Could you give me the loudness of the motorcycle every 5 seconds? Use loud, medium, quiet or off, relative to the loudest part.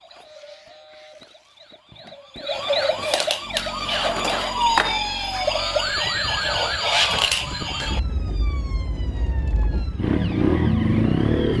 quiet, quiet, loud.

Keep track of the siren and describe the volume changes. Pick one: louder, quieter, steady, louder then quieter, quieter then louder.
louder then quieter.